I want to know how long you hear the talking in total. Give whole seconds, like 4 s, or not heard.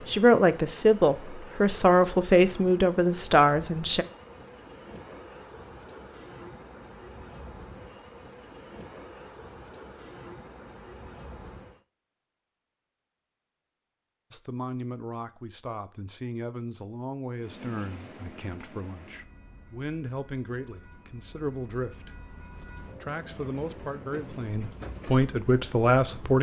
15 s.